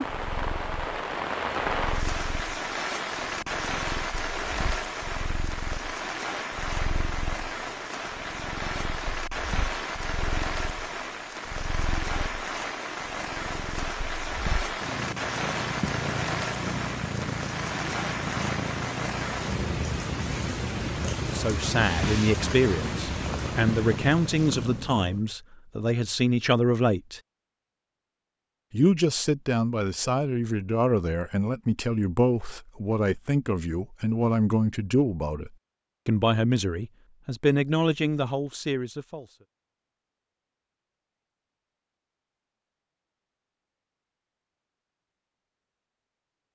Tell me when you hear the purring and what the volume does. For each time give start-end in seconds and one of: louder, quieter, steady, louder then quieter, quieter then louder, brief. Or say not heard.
0.1-25.2 louder.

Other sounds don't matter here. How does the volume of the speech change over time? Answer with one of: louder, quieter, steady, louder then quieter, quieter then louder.
steady.